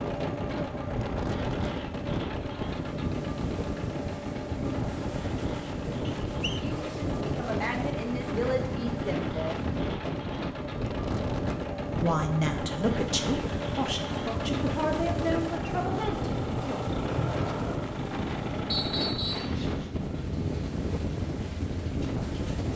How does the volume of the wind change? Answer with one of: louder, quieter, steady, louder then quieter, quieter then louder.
steady.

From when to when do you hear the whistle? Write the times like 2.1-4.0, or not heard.
6.0-6.6, 18.7-19.6.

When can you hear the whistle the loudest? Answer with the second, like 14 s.
19 s.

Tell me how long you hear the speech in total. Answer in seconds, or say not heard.
8 s.